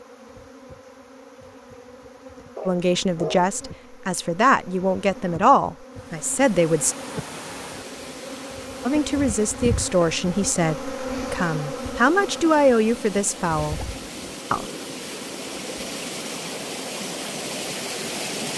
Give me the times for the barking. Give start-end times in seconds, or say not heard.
2.5-3.5.